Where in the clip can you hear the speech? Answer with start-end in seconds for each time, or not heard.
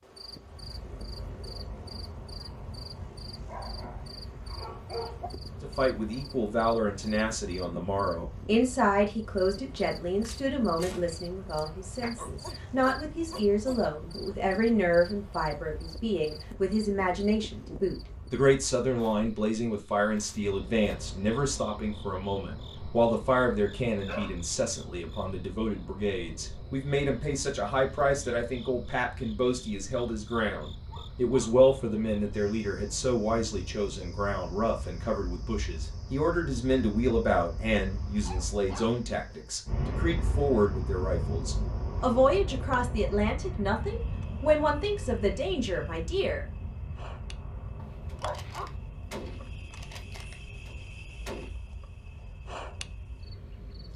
5.6-46.5.